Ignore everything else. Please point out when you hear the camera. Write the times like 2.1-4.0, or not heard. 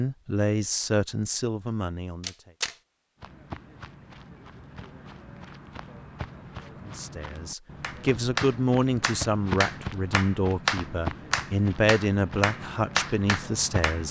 2.2-2.8.